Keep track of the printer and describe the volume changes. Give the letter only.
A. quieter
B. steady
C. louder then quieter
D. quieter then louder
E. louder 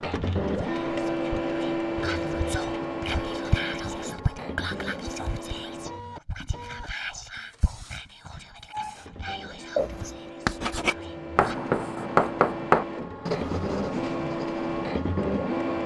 D.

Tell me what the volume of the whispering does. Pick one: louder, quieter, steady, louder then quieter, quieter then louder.
louder then quieter.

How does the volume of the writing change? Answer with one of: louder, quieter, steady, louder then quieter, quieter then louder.
louder then quieter.